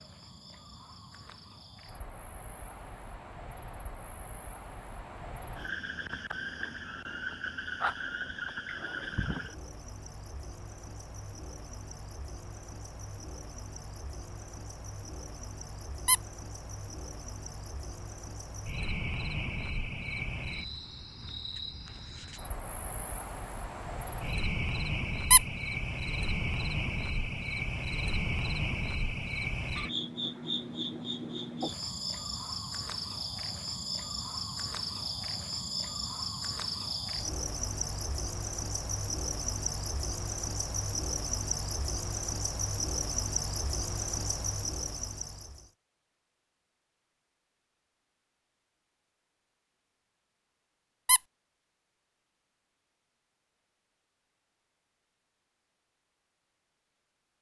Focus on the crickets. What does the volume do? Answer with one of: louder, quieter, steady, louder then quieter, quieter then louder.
quieter then louder.